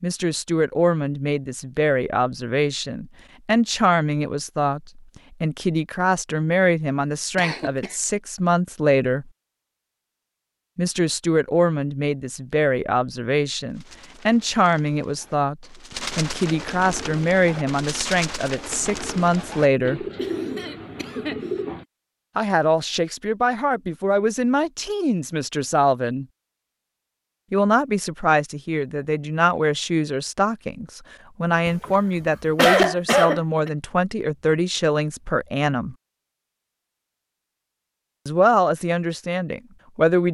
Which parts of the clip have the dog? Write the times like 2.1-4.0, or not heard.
not heard.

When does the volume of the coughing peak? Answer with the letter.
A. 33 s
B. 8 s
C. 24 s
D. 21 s
A.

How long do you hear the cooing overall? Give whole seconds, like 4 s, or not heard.
8 s.